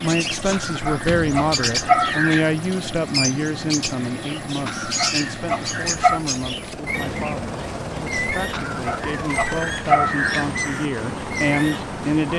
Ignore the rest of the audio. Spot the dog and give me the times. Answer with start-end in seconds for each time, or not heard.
0.5-2.5, 4.7-6.2, 8.5-10.6.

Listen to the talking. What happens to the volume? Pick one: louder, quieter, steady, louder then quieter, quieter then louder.
quieter then louder.